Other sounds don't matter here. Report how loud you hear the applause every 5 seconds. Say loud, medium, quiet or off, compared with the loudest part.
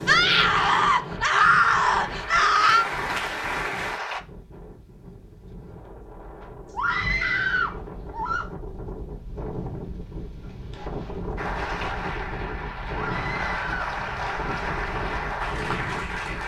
loud, off, loud, loud.